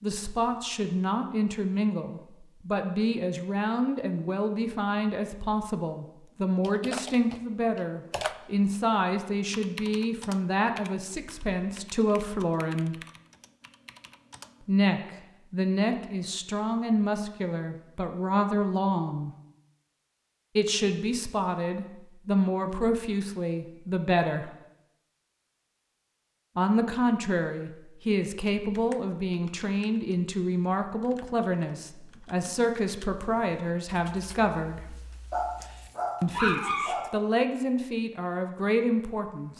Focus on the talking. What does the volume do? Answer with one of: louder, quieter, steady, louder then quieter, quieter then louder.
steady.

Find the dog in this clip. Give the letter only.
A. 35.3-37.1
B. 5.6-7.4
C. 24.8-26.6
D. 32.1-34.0
A.